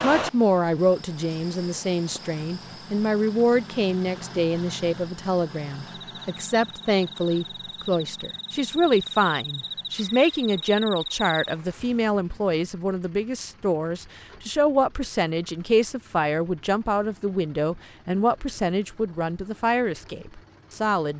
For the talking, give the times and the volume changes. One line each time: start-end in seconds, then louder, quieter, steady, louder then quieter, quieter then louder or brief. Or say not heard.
0.0-21.1 steady.